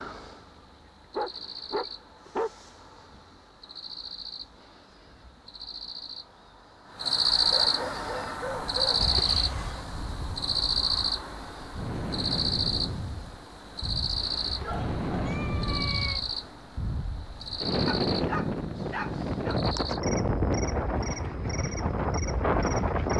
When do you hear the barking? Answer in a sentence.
The barking can be heard from 1.1 to 2.5 s, from 7.5 to 9.1 s, from 14.6 to 15.2 s and from 17.9 to 19.6 s.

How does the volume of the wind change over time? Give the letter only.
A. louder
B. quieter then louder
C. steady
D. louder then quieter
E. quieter
A.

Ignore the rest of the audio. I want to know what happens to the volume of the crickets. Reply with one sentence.
The loudness of the crickets goes up, then down.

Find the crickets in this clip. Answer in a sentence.
The crickets can be heard from 0.0 to 23.0 s.